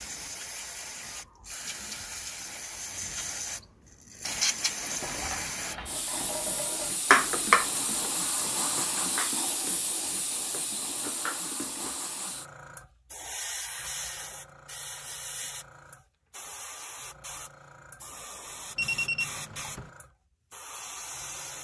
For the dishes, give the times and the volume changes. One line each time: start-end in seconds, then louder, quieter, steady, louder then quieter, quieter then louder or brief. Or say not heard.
4.2-12.0 louder then quieter.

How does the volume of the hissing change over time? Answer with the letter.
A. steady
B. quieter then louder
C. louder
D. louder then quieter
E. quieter
E.